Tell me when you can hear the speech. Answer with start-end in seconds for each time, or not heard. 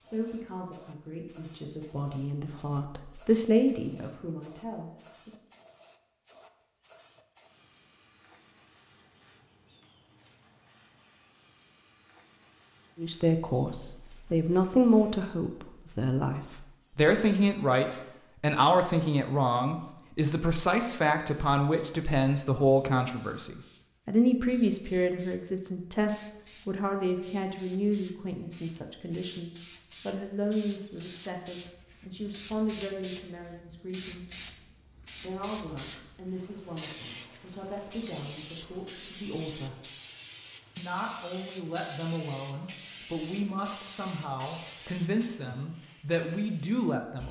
0.0-5.3, 12.9-34.2, 35.1-39.8, 40.8-47.2.